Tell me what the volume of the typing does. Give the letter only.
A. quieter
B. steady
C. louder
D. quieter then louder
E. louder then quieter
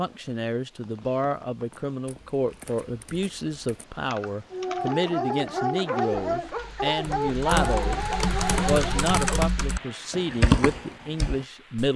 C.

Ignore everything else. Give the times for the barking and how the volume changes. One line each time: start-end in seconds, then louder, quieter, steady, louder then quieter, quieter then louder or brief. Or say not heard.
4.5-9.4 steady.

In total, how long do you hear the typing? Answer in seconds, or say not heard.
10 s.